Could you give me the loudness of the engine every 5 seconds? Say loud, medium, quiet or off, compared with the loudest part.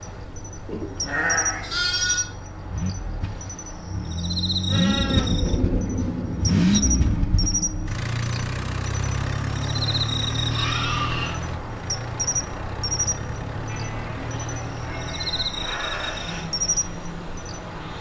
medium, loud, medium, medium.